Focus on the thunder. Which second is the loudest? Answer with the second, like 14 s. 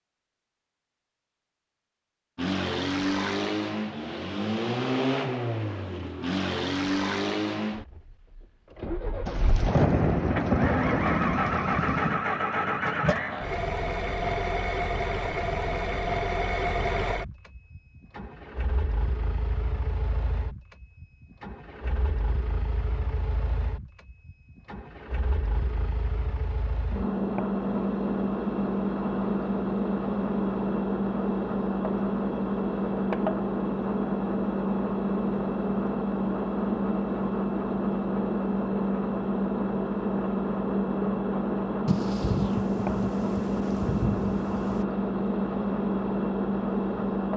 10 s.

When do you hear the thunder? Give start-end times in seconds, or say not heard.
9.2-12.2, 41.9-44.9.